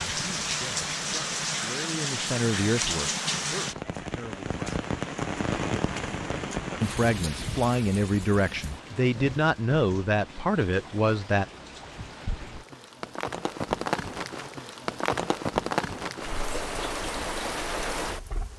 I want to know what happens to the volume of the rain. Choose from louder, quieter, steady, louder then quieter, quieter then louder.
quieter then louder.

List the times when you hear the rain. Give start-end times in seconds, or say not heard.
0.0-18.5.